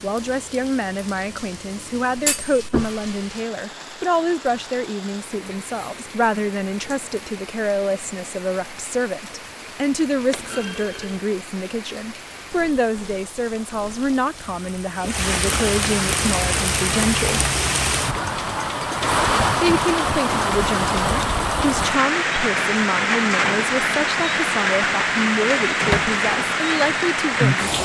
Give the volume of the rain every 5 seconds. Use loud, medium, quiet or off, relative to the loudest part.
quiet, quiet, quiet, loud, loud, loud.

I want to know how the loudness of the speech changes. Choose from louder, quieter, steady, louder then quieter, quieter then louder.
steady.